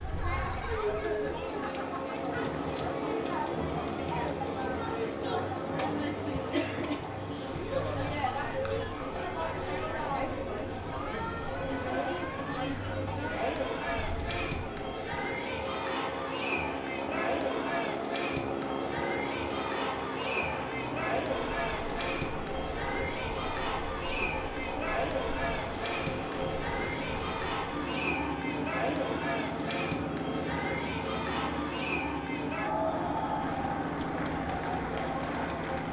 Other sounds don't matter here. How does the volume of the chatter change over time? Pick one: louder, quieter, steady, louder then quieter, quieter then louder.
steady.